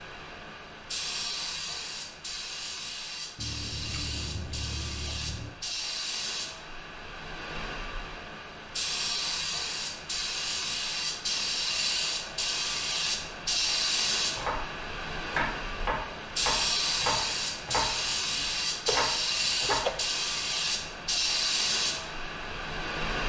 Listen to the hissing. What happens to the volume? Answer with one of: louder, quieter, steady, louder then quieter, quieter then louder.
louder.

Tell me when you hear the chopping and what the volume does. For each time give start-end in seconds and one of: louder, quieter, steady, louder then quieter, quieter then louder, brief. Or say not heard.
14.2-19.9 steady.